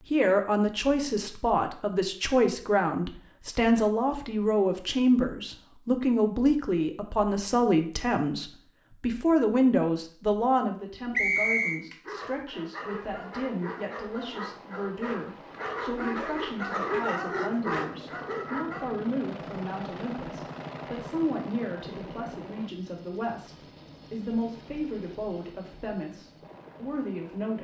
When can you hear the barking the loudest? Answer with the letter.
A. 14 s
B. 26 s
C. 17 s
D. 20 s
C.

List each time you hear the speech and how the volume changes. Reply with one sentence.
The speech can be heard from 0.0 to 27.5 s, getting quieter.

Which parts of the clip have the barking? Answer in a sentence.
The barking can be heard from 11.6 to 18.9 s.